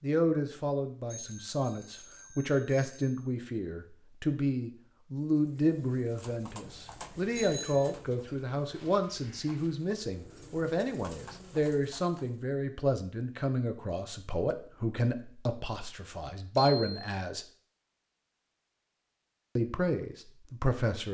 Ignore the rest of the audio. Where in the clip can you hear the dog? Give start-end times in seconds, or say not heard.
not heard.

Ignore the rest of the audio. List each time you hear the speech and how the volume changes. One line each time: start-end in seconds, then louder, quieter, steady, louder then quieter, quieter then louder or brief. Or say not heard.
0.0-17.4 steady
19.6-21.0 brief.